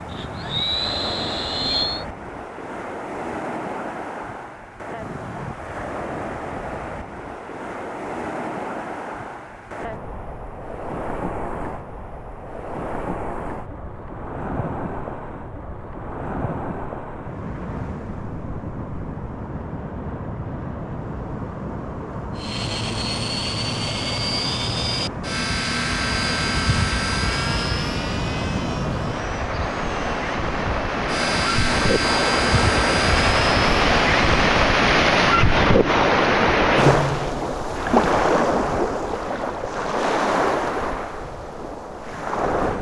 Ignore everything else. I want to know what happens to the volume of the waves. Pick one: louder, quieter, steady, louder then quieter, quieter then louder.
louder.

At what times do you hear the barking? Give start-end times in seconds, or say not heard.
not heard.